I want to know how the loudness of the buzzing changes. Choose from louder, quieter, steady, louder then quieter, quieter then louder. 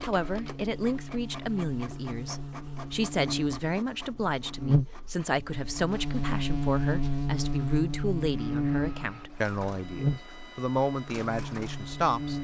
louder.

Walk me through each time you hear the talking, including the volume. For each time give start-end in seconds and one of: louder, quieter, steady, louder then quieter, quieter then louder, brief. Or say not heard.
0.1-12.3 steady.